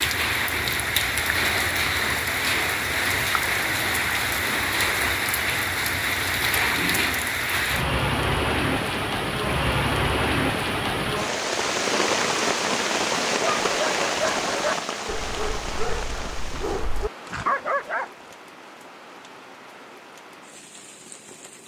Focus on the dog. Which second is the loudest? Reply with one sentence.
The volume of the dog peaks at 18 seconds.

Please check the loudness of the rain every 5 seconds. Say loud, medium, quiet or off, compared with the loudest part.
loud, loud, loud, quiet, quiet.